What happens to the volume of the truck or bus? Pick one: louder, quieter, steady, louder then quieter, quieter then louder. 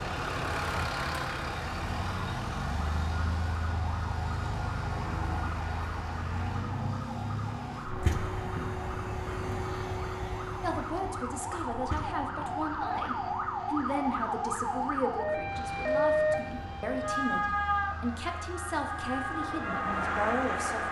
quieter.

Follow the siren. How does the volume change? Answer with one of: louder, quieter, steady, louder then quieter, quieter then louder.
louder.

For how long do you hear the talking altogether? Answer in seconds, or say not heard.
10 s.